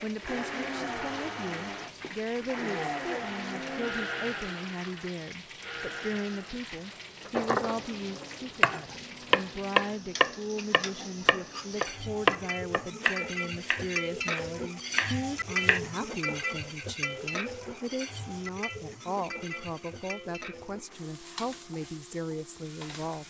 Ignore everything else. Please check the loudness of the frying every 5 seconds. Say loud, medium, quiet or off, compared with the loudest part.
medium, medium, loud, loud, medium.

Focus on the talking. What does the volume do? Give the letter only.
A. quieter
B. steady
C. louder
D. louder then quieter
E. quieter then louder
B.